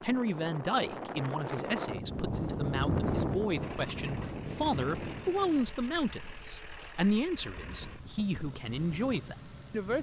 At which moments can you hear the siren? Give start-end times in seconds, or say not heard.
not heard.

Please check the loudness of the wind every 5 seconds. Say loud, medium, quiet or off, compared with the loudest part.
loud, quiet.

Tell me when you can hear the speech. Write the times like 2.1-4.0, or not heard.
0.0-9.9.